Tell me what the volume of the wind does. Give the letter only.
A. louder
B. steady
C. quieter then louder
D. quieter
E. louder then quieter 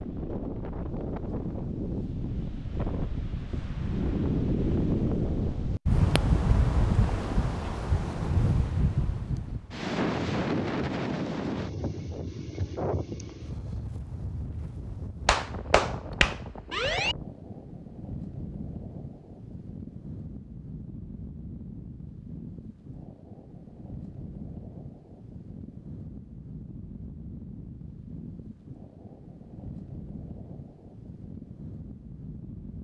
D.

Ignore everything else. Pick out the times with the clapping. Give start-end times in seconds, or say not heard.
15.2-17.1.